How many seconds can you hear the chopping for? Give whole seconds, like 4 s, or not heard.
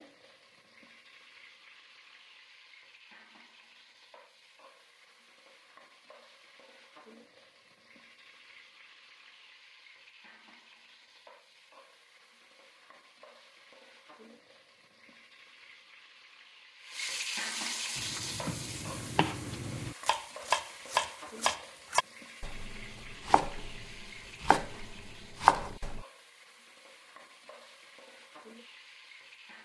8 s.